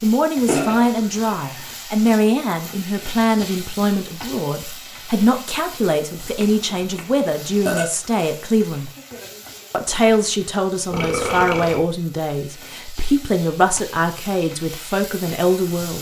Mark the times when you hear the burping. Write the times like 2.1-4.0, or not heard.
0.5-1.8, 6.2-7.9, 10.9-11.8.